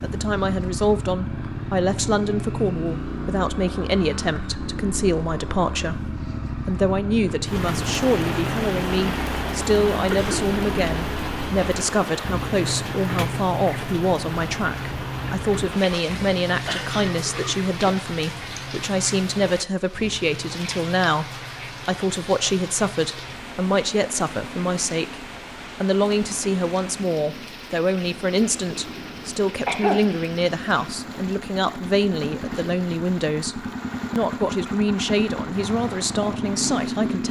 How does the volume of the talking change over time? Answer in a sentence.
The loudness of the talking stays about the same.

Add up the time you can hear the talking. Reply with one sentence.
The talking can be heard for 36 seconds in total.